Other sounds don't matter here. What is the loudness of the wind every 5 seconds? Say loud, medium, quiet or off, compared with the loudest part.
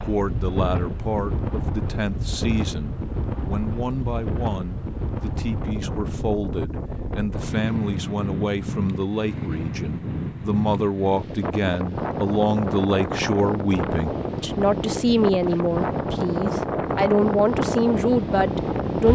medium, medium, loud, loud.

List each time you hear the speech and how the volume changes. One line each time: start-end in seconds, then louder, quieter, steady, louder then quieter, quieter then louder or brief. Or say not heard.
0.1-19.0 louder.